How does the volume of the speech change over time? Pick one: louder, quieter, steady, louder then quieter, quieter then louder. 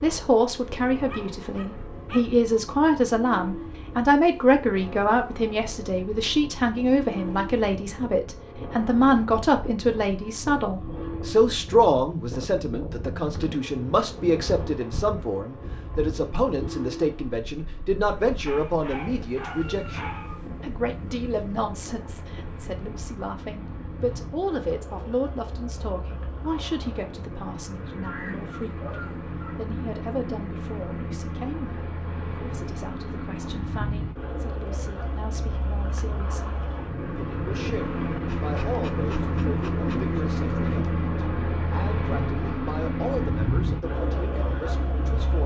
quieter.